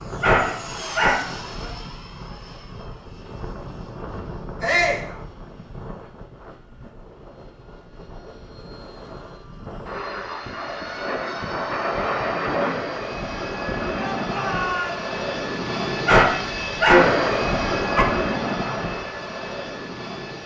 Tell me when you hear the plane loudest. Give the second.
17 s.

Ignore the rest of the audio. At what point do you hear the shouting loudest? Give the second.
5 s.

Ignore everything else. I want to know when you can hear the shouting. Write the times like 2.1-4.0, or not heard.
4.6-5.0, 13.9-15.1.